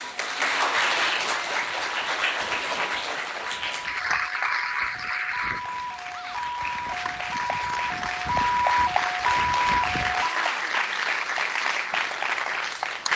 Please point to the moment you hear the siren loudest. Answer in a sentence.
The volume of the siren peaks at 9 seconds.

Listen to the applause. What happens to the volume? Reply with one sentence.
The volume of the applause goes down, then up.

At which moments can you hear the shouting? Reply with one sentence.
The shouting can be heard from 1.2 to 1.7 s, from 6.0 to 6.5 s and from 10.2 to 10.8 s.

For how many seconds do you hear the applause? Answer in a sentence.
The applause can be heard for 13 seconds in total.